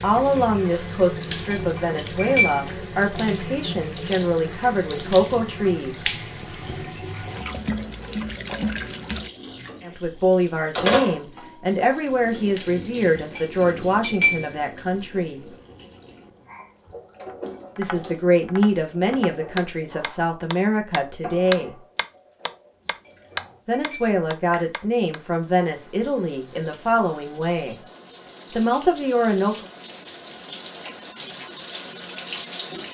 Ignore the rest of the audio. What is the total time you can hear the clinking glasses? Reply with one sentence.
The clinking glasses can be heard for 4 seconds in total.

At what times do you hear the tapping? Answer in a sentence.
You can hear the tapping from 17.2 to 25.2 s.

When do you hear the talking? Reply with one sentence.
You can hear the talking from 0.0 to 6.0 s, from 9.8 to 15.4 s, from 17.8 to 21.8 s, from 23.6 to 27.8 s and from 28.5 to 29.6 s.